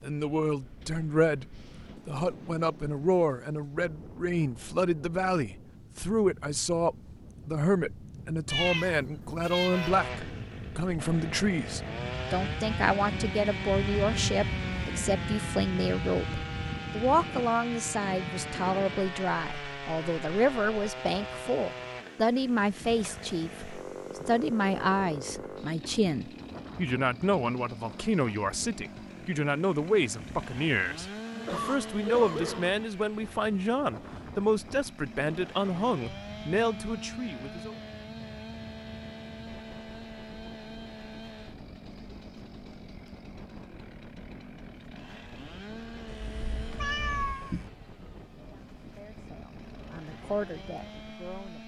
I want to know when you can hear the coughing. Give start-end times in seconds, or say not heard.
31.3-32.8.